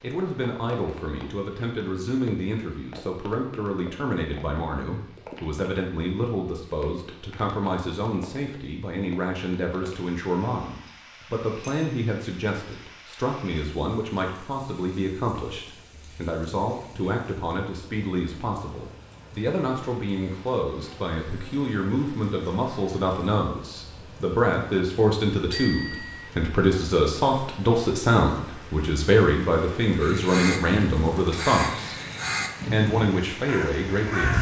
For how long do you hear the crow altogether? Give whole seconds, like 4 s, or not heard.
4 s.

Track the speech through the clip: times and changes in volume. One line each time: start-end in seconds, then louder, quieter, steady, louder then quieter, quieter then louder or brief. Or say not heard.
0.0-31.9 louder
32.7-34.3 brief.